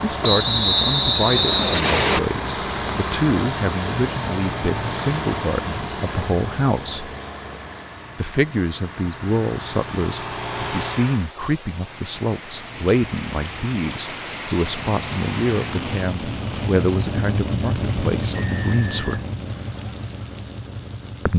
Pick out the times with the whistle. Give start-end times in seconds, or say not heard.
0.2-2.2, 18.4-19.2.